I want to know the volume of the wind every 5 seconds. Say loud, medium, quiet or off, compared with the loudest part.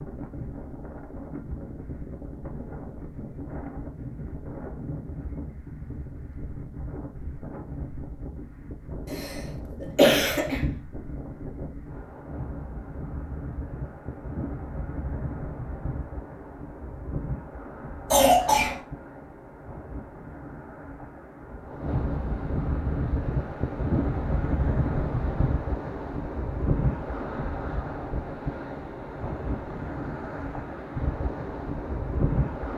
medium, medium, medium, medium, loud, loud, loud.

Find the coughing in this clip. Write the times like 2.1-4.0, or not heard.
9.1-10.8, 18.1-18.8.